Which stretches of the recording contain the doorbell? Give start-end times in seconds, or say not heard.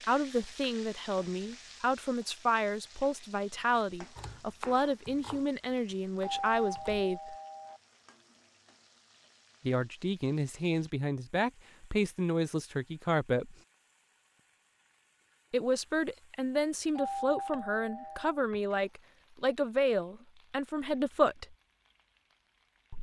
6.2-7.8, 16.9-18.4.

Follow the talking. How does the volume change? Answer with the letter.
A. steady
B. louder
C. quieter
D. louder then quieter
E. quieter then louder
A.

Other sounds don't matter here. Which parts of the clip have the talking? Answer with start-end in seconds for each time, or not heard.
0.0-7.3, 9.7-13.6, 15.5-21.6.